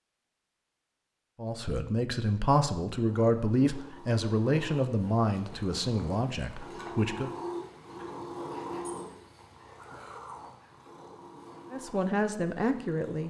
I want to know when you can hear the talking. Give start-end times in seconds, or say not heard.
1.4-7.3, 11.7-13.2.